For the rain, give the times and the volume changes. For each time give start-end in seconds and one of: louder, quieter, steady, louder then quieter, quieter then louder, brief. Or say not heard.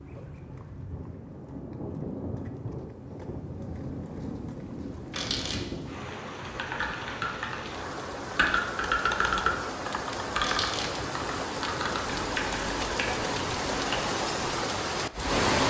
0.0-15.6 louder.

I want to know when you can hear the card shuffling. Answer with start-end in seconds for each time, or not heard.
5.1-5.7, 10.4-10.9.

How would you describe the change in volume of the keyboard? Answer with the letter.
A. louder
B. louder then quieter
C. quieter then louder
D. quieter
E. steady
B.